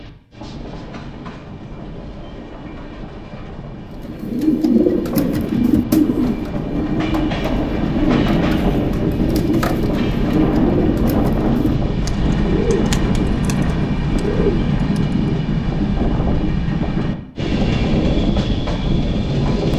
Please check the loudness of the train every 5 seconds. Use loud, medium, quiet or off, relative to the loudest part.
quiet, loud, loud, loud.